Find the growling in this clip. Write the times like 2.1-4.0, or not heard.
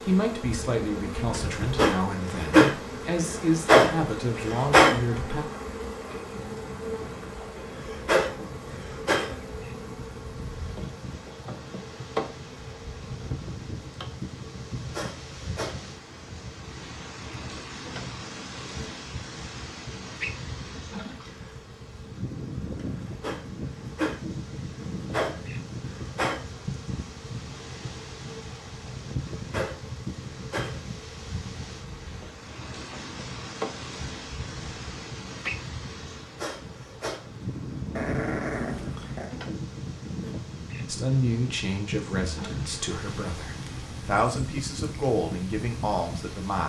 38.0-39.3.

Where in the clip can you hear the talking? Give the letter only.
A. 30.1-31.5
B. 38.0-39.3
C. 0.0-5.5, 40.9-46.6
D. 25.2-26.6
C.